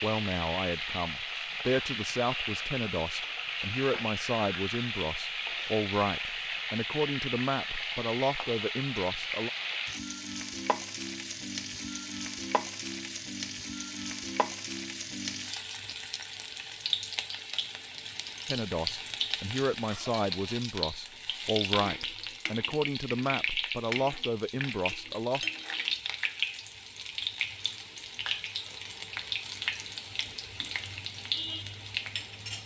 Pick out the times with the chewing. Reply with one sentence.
You can't hear the chewing here.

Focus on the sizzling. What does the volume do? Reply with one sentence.
The volume of the sizzling stays about the same.